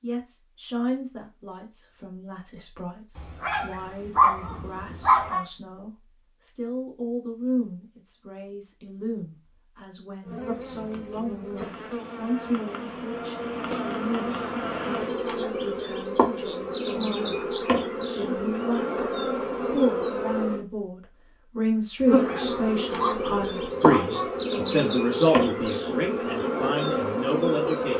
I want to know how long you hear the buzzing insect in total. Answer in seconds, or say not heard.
16 s.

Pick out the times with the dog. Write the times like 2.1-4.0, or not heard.
3.1-5.5, 22.0-24.4.